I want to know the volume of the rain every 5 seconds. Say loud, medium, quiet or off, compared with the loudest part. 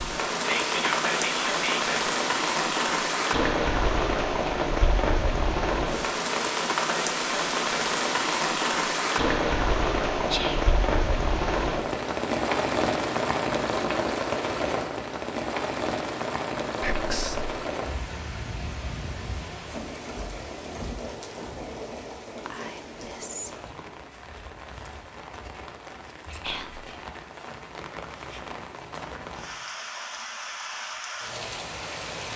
loud, loud, loud, medium, quiet, quiet, medium.